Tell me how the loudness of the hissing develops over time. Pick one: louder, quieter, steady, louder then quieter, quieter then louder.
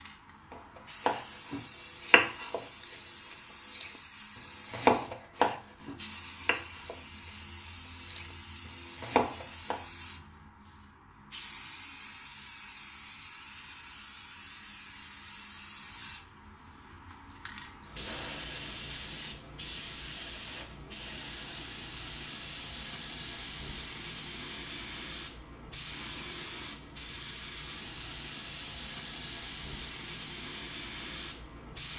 louder.